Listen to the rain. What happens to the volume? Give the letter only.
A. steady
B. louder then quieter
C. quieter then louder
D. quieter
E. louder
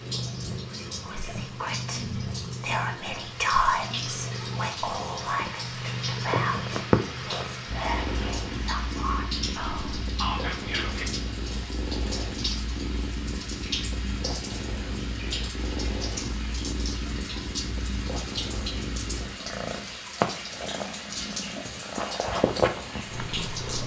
A.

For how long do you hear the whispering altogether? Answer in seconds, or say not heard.
10 s.